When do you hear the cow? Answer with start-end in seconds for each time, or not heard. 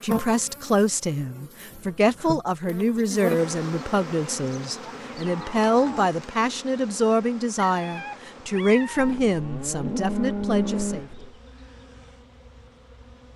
0.1-2.4, 4.8-6.2, 8.9-11.4.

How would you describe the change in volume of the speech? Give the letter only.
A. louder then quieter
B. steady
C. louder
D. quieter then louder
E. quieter
B.